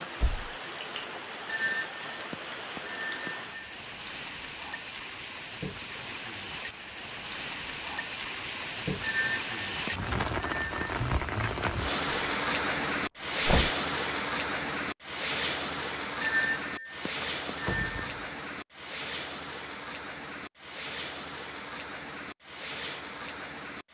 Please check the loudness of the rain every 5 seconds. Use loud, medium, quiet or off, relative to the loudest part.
medium, medium, loud, medium, medium.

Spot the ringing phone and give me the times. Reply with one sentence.
The ringing phone can be heard from 1.4 to 3.8 s, from 9.0 to 10.9 s and from 16.2 to 18.1 s.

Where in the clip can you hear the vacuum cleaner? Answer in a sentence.
The vacuum cleaner can't be heard in this clip.